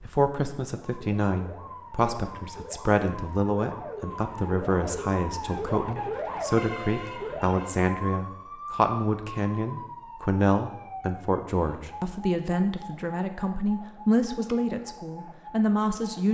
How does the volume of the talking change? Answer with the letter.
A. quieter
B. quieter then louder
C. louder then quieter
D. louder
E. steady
E.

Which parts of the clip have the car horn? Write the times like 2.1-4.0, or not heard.
not heard.